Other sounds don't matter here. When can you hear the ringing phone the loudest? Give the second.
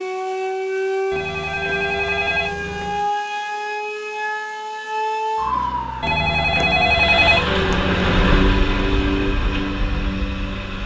7 s.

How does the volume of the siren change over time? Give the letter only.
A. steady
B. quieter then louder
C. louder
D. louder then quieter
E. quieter
A.